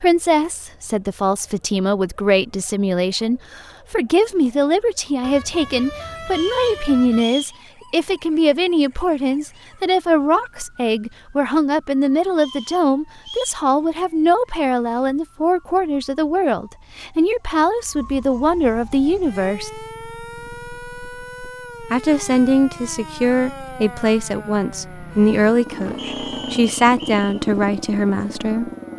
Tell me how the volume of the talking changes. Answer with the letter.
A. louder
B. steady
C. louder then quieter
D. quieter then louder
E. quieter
B.